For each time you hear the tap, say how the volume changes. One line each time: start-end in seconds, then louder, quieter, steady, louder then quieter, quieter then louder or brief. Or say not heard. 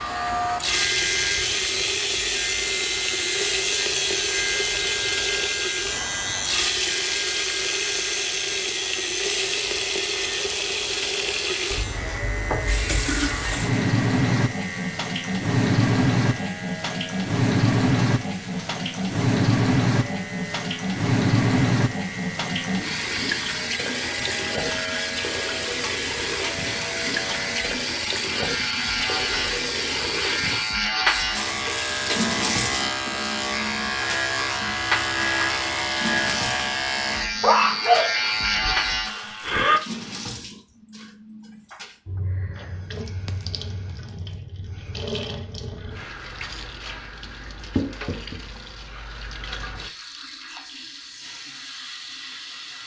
0.0-52.8 quieter.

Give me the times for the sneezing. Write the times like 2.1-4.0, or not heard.
37.4-38.8.